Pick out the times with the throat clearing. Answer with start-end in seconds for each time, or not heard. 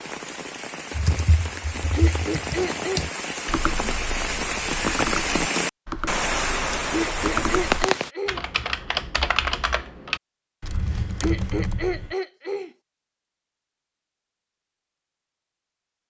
1.9-3.0, 6.9-8.4, 11.2-12.7.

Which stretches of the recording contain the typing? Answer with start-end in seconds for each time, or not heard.
0.9-12.2.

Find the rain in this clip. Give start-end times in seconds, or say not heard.
0.0-8.1.